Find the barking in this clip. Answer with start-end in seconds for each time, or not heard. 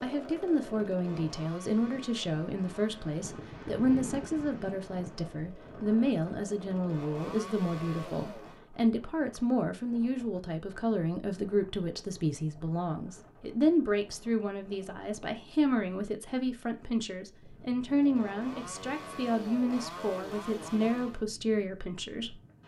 not heard.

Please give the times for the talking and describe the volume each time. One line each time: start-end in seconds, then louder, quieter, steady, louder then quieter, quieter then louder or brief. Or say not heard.
0.0-22.4 steady.